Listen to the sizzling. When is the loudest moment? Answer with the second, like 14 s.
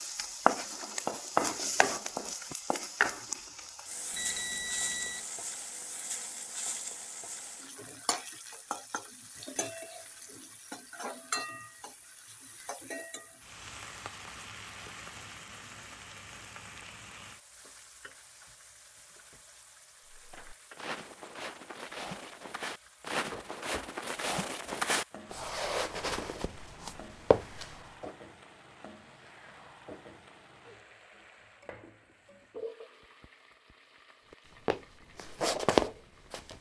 1 s.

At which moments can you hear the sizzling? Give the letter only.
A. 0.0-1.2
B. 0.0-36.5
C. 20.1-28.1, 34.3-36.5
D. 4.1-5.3
B.